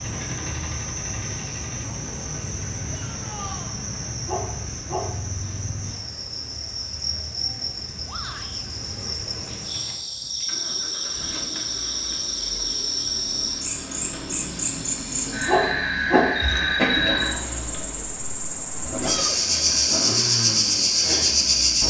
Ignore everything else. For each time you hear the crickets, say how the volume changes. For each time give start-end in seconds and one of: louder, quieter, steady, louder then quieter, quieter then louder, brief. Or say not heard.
0.0-21.8 louder.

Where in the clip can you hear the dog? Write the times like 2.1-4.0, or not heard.
4.2-5.1, 15.4-16.3.